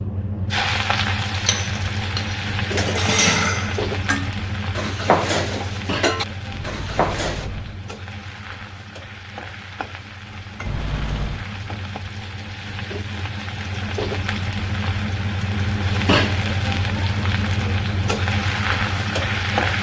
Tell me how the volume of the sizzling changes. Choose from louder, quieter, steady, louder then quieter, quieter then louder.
quieter then louder.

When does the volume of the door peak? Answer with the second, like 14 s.
11 s.